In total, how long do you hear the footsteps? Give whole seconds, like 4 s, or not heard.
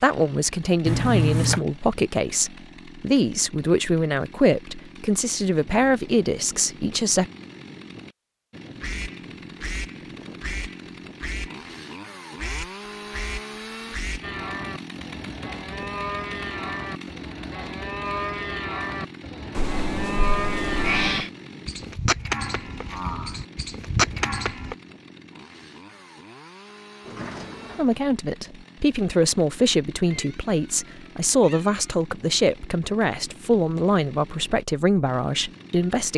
not heard.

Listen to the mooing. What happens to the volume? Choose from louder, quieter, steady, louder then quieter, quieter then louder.
louder.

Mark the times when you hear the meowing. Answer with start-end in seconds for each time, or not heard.
0.8-1.6, 19.6-21.3, 30.1-31.9.